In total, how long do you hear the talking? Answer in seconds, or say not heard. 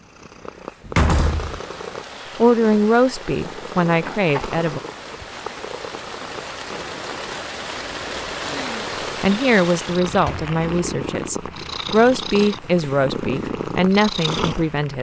8 s.